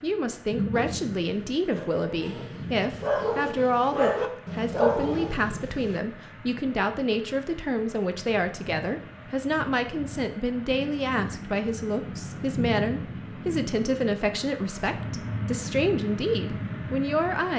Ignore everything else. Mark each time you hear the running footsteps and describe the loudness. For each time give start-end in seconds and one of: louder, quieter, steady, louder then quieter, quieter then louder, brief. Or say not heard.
not heard.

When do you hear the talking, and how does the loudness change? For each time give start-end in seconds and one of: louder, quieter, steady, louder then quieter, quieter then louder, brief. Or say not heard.
0.0-17.5 steady.